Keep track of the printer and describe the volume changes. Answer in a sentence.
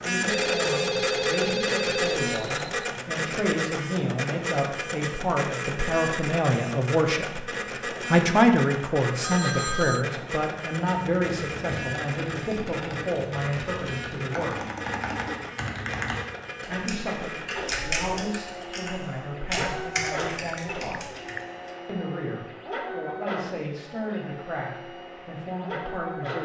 The loudness of the printer goes down.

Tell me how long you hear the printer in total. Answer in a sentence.
You can hear the printer for 26 seconds altogether.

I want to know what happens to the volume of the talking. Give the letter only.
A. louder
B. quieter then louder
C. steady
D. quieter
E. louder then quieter
E.